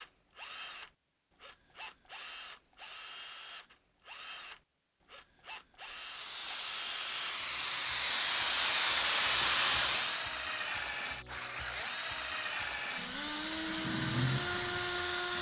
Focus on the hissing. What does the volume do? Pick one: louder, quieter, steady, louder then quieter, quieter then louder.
louder.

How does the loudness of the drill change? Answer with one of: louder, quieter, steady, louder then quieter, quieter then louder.
louder.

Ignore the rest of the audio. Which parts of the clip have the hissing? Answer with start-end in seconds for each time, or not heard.
5.9-10.3.